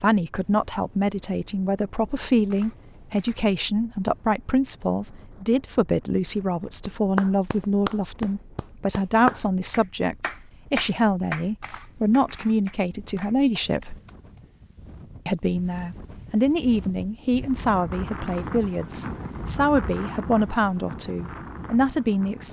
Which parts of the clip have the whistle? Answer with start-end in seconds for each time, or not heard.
not heard.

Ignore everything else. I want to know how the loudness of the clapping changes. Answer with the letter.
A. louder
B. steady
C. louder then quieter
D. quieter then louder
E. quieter
E.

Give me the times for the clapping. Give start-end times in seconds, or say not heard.
6.8-14.4.